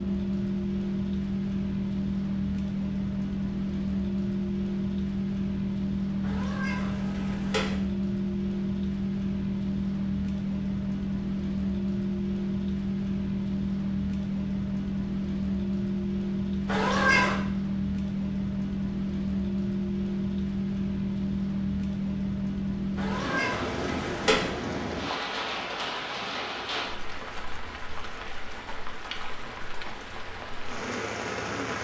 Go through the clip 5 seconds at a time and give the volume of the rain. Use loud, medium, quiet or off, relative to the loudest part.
loud, loud, loud, loud, loud, medium, medium.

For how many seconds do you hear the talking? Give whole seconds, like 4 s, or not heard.
not heard.